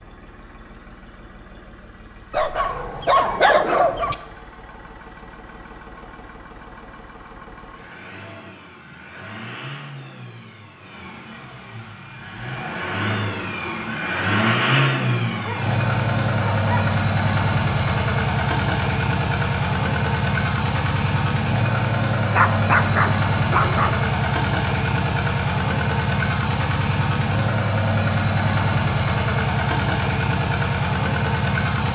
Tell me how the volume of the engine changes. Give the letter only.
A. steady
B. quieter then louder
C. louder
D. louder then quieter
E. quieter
C.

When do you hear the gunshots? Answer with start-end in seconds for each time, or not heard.
not heard.